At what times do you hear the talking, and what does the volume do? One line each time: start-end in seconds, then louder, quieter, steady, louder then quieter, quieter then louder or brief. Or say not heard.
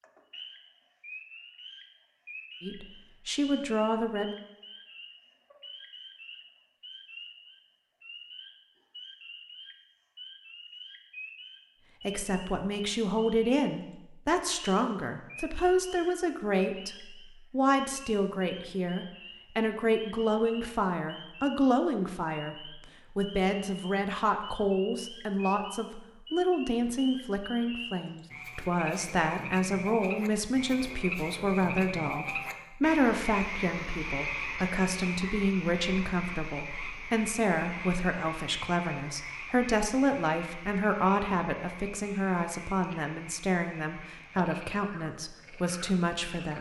2.6-4.3 brief
12.1-46.5 steady.